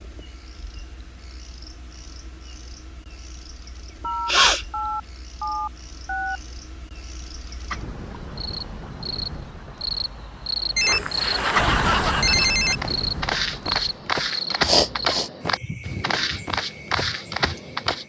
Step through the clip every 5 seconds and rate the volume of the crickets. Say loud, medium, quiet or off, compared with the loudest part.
quiet, medium, loud, medium.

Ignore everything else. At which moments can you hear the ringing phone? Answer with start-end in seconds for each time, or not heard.
4.0-6.4, 10.8-12.8.